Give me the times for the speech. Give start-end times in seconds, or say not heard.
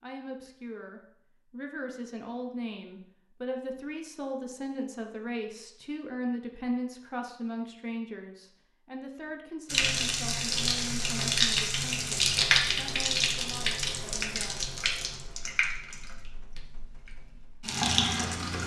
0.0-14.7.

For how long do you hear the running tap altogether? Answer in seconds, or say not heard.
9 s.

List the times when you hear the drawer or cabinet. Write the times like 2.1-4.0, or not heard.
not heard.